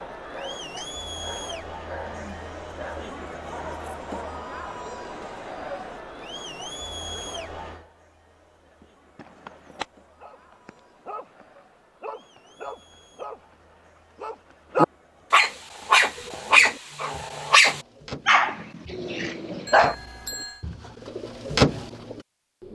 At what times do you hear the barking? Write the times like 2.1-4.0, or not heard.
0.0-4.4, 8.8-19.9.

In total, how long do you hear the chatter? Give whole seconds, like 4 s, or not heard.
18 s.